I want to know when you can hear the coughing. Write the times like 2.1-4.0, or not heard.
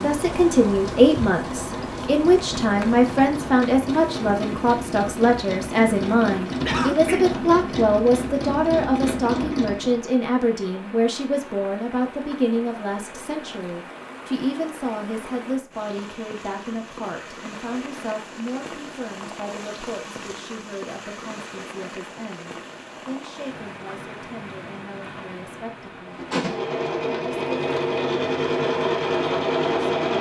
6.7-7.2.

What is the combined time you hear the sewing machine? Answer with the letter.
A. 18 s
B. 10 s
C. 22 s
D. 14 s
D.